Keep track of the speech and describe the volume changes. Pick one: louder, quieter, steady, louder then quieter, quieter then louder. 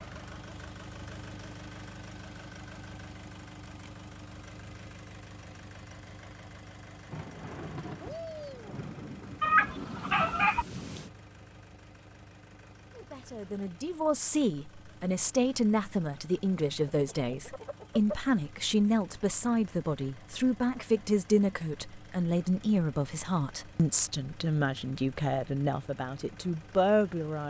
steady.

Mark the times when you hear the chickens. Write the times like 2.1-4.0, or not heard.
9.4-10.7, 16.9-18.3.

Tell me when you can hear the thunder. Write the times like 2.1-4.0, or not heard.
7.1-11.1.